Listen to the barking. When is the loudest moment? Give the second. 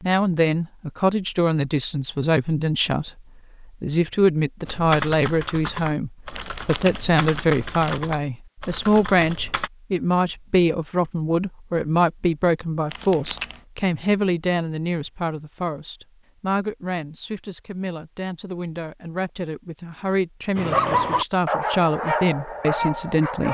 21 s.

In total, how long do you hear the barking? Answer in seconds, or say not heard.
3 s.